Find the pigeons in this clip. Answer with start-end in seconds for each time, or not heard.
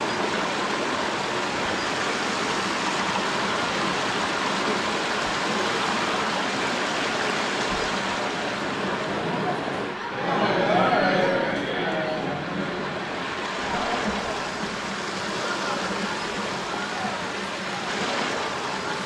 not heard.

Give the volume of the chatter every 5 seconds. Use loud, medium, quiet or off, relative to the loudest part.
medium, medium, loud, medium.